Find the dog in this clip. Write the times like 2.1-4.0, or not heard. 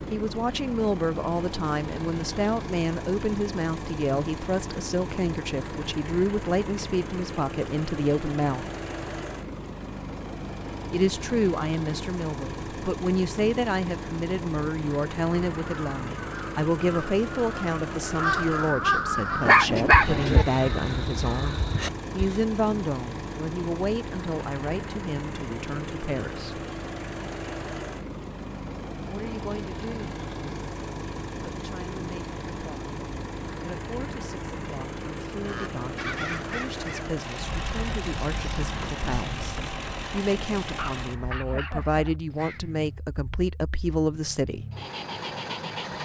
19.4-20.4, 40.8-42.1.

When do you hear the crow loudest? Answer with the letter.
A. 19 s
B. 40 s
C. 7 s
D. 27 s
A.